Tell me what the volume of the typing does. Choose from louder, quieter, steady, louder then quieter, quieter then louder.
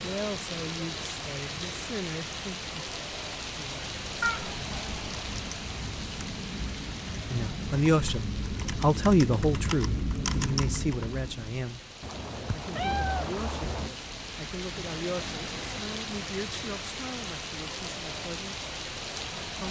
louder.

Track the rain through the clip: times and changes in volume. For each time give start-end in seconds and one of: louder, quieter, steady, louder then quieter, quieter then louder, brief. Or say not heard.
0.0-19.6 quieter then louder.